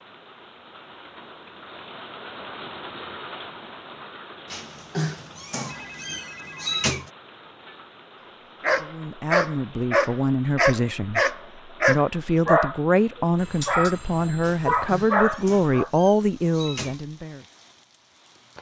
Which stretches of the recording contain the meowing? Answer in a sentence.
You can hear the meowing from 4.5 to 7.1 s and from 14.4 to 17.0 s.